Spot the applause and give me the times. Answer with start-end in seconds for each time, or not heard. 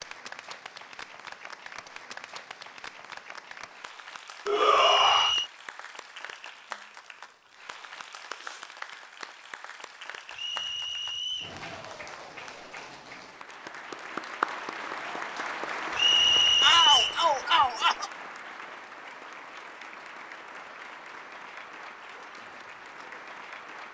0.0-23.8.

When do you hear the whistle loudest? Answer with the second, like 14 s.
17 s.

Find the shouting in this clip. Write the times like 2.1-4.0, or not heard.
4.5-5.3, 16.6-18.1.